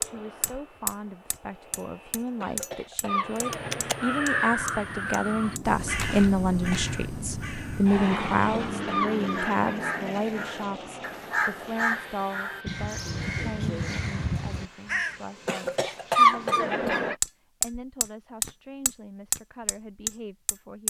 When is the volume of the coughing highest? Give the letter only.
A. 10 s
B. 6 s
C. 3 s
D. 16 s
D.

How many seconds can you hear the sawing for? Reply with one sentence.
You can't hear the sawing here.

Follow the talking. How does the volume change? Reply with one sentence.
The loudness of the talking goes up, then down.